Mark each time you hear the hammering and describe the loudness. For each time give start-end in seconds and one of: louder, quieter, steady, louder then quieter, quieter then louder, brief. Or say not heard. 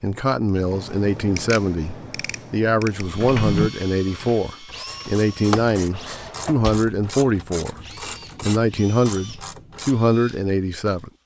not heard.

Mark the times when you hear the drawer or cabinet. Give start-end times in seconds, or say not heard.
3.2-3.7, 5.9-6.9.